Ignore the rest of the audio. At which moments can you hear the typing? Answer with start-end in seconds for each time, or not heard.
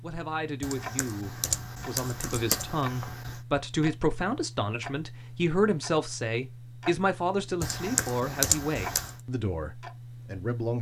0.6-3.4, 7.6-9.2.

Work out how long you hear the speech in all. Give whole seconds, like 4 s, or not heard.
11 s.